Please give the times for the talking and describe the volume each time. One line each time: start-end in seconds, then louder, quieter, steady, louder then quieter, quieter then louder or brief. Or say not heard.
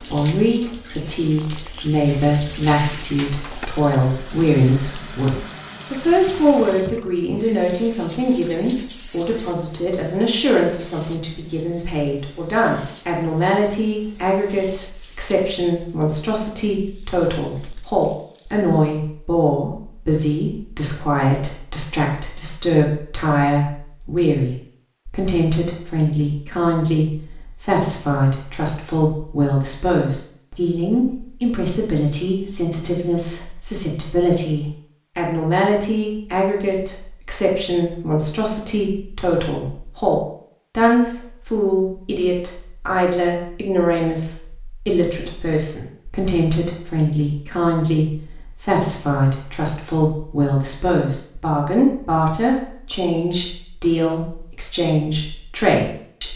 0.1-56.3 steady.